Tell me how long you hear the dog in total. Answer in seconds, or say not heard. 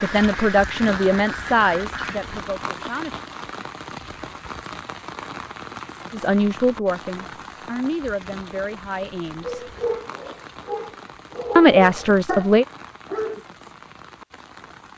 4 s.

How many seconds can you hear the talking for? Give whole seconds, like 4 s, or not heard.
8 s.